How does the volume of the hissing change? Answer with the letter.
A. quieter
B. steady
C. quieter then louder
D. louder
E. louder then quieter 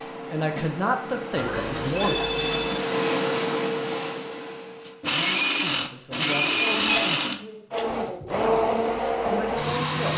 E.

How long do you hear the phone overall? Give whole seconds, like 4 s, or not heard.
2 s.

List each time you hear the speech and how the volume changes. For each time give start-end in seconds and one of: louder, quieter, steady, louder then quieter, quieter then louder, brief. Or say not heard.
0.3-2.3 brief
5.8-10.1 quieter then louder.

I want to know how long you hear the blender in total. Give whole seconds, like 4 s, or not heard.
5 s.